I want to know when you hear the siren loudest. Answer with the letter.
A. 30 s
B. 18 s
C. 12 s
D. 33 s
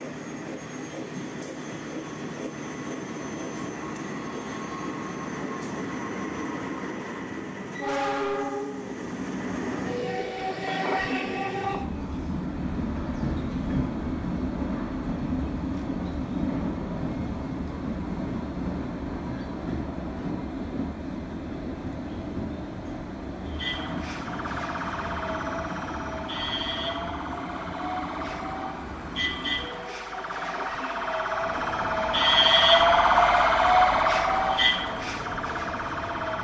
D.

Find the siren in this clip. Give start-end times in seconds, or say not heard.
23.4-36.3.